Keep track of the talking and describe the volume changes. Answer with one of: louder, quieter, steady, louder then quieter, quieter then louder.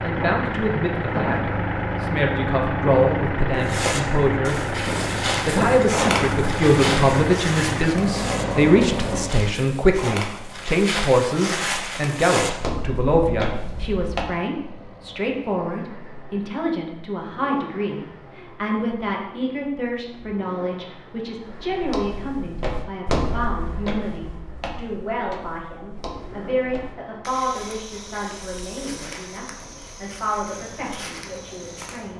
quieter.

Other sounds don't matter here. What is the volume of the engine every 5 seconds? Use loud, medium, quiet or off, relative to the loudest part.
loud, loud, quiet, quiet, quiet, quiet, quiet.